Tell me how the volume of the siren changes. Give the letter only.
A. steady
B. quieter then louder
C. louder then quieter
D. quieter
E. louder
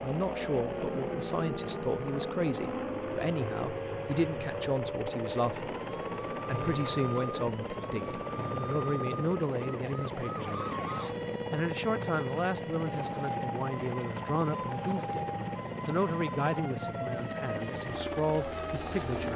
A.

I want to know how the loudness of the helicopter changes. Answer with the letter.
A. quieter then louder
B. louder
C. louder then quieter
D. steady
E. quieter
D.